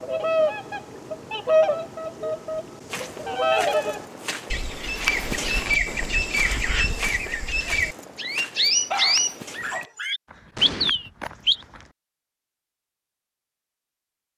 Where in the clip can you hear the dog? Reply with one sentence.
You can hear the dog from 8.9 to 10.2 s.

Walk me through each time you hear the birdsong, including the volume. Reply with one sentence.
The birdsong can be heard from 0.0 to 11.6 s, at a steady volume.